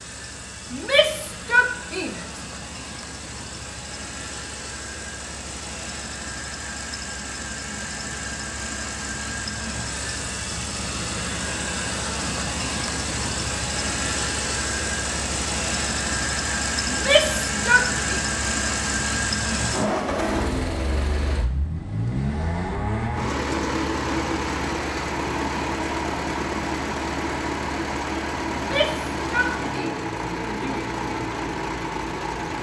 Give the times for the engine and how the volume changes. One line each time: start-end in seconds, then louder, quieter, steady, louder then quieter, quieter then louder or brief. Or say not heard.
0.0-32.5 louder.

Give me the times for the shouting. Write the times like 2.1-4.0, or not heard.
0.7-2.2, 16.9-18.2, 28.6-30.9.